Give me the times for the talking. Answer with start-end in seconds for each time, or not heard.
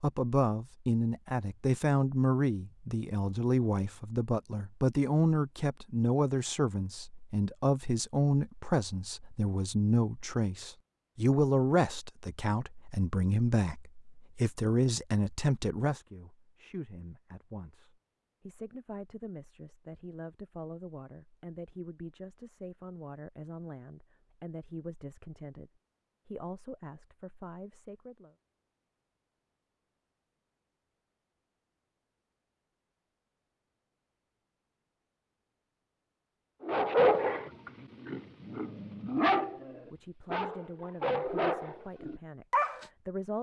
0.0-28.4, 39.9-43.3.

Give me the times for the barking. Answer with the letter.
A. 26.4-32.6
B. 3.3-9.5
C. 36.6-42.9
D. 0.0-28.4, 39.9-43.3
C.